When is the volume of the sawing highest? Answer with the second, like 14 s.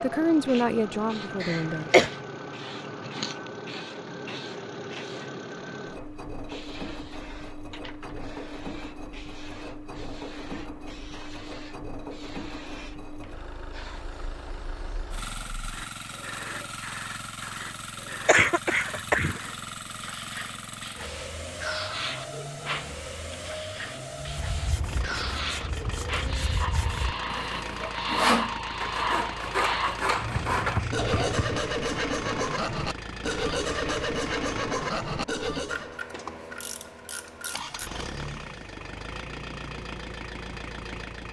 28 s.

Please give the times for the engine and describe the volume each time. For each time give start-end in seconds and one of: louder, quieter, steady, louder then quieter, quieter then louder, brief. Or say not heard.
0.0-41.2 steady.